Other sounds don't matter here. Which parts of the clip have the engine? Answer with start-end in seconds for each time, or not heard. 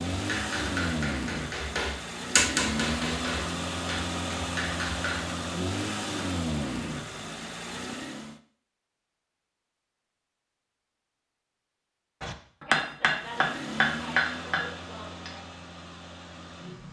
0.0-8.4, 13.1-16.8.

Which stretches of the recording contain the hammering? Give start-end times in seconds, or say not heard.
0.1-5.3, 12.2-15.4.